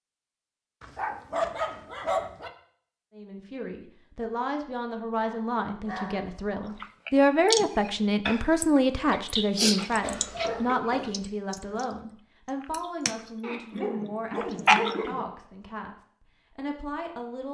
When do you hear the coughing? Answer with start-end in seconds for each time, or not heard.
10.0-11.2.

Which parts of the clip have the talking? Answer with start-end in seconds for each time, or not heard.
3.1-17.4.